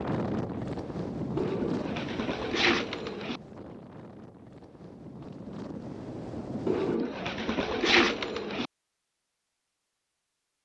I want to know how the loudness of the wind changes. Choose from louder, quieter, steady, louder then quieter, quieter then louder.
quieter then louder.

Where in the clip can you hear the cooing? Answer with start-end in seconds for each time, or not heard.
1.4-3.4, 6.7-8.7.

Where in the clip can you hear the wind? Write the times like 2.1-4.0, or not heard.
0.0-7.0.